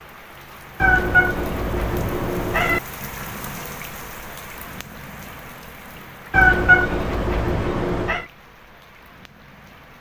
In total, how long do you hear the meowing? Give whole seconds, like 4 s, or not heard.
4 s.